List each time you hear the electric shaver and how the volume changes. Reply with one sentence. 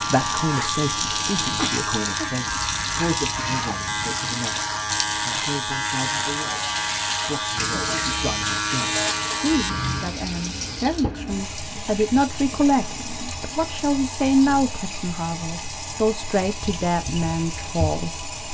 The electric shaver can be heard from 0.0 to 10.2 s, at a steady volume.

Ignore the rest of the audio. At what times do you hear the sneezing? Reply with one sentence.
The sneezing can be heard from 1.6 to 2.3 s.